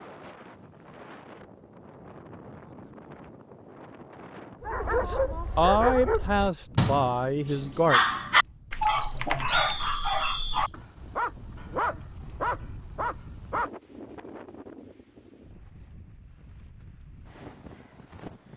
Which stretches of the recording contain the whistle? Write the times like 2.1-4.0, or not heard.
8.8-10.7.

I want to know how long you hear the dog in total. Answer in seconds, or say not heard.
9 s.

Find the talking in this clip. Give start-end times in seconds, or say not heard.
5.0-8.0.